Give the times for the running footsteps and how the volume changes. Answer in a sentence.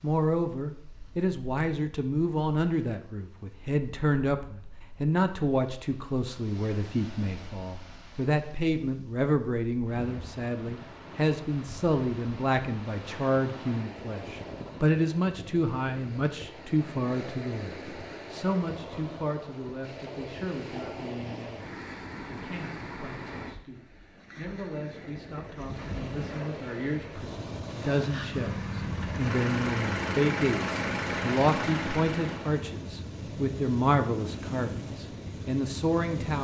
The running footsteps can't be heard in this clip.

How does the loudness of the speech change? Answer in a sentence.
The loudness of the speech goes down, then up.